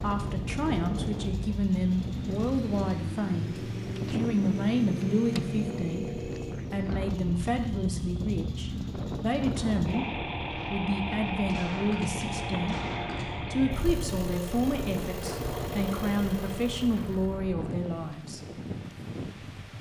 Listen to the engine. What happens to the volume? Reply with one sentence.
The loudness of the engine stays about the same.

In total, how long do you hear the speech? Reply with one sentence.
The speech can be heard for 18 seconds in total.